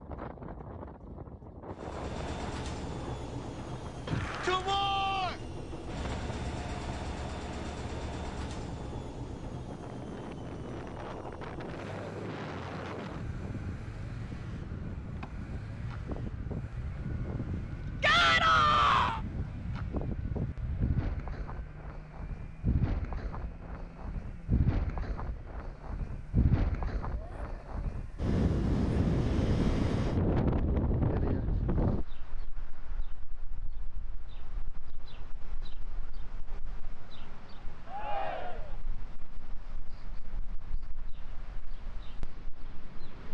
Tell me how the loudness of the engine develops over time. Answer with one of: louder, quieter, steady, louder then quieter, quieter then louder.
quieter.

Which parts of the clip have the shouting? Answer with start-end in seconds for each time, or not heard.
4.0-5.3, 18.0-19.2, 37.9-38.8.